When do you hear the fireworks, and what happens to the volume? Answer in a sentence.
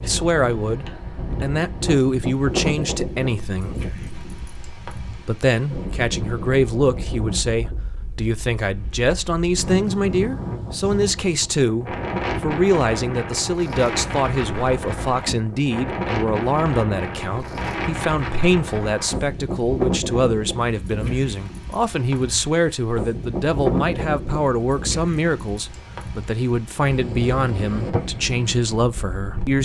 You can't hear the fireworks here.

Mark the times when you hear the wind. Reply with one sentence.
You can hear the wind from 0.0 to 29.5 s.